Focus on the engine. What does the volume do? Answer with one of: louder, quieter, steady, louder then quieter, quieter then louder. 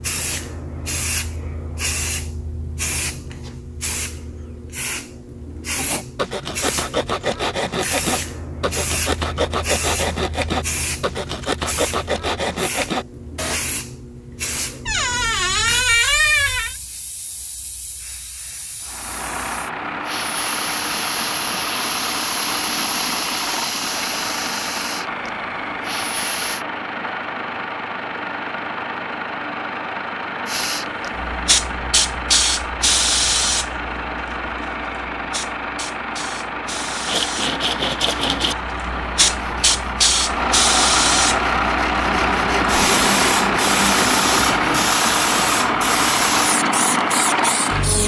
louder.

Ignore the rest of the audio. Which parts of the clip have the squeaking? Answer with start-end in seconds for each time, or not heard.
14.8-16.8.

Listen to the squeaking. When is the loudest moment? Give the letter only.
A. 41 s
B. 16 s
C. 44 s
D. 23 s
B.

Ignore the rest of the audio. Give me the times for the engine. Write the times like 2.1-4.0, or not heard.
18.8-48.0.